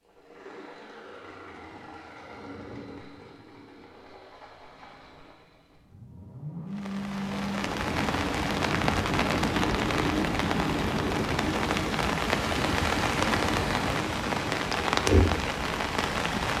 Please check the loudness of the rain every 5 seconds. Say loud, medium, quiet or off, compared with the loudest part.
off, loud, loud, loud.